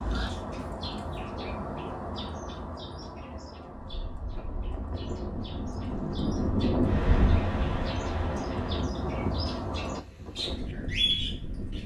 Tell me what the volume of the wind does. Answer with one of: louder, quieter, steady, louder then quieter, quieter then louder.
louder then quieter.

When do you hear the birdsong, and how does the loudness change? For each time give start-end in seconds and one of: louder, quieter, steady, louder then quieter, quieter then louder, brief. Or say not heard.
0.0-11.8 quieter then louder.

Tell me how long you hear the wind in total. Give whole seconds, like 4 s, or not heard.
8 s.